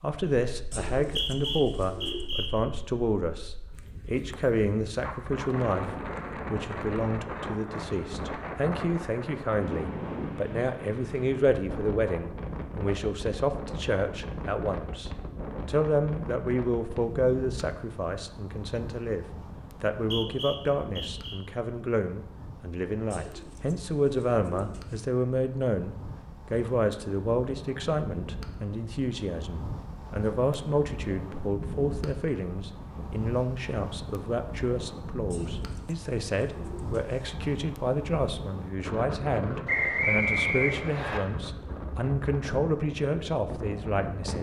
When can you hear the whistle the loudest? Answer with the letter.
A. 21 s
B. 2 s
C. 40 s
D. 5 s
C.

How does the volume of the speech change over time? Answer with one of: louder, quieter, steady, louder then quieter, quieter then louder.
steady.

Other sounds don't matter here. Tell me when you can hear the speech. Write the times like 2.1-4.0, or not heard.
0.0-44.3.